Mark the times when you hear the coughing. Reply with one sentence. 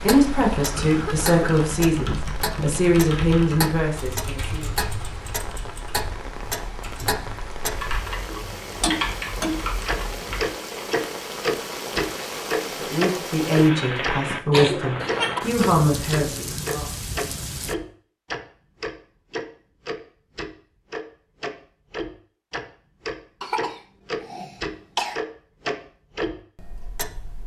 The coughing can be heard from 0.8 to 1.4 s, from 14.5 to 15.4 s and from 23.4 to 25.2 s.